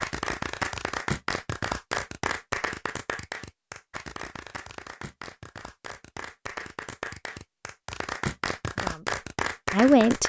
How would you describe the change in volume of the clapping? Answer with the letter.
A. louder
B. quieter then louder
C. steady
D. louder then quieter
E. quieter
B.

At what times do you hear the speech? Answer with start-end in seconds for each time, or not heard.
8.8-10.2.